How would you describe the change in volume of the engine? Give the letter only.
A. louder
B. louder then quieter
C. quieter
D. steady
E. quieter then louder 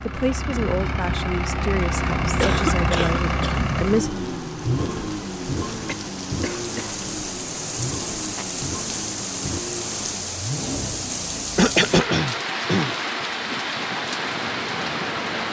C.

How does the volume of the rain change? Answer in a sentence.
The volume of the rain goes up.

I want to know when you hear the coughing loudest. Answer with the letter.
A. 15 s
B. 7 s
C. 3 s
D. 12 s
D.